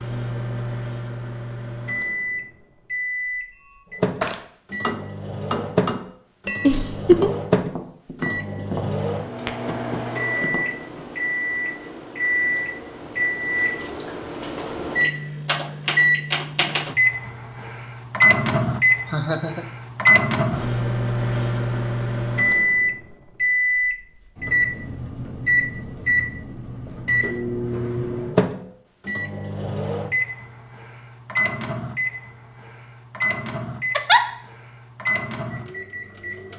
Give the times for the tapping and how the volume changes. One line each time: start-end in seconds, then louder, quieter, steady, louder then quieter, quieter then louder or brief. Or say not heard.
3.6-11.1 quieter.